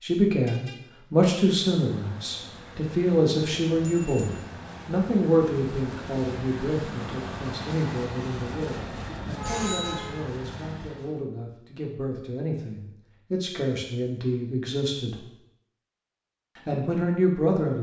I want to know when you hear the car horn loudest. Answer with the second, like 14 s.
10 s.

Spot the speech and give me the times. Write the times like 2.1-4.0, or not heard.
0.0-15.2, 16.6-17.7.